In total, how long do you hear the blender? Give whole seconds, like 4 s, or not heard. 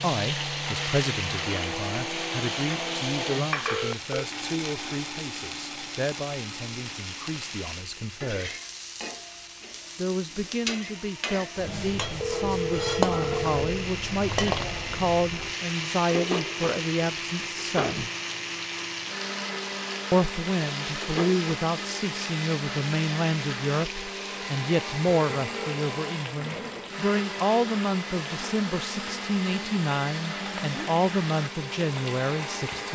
33 s.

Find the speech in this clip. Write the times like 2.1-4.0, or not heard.
0.0-8.6, 9.9-18.1, 20.1-32.9.